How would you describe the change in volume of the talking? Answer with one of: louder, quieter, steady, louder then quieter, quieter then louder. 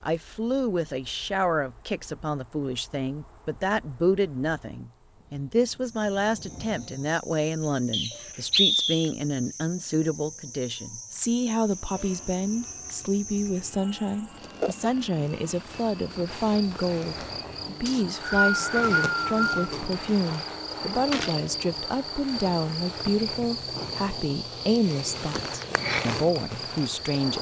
steady.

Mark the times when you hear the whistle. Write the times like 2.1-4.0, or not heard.
7.9-9.1, 17.9-19.6.